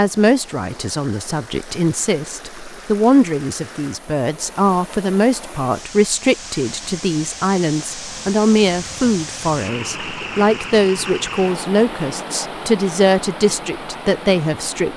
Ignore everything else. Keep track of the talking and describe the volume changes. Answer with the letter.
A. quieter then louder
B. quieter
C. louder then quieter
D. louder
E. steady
E.